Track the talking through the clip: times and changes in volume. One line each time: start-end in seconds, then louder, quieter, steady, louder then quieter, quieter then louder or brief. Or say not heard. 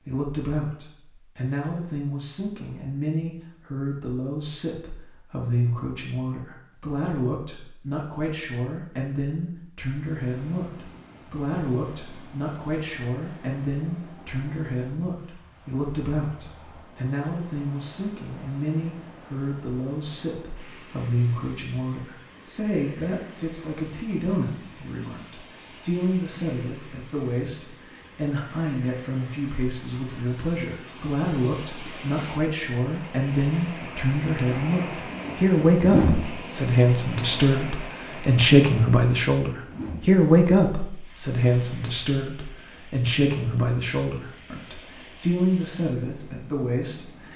0.0-47.3 louder.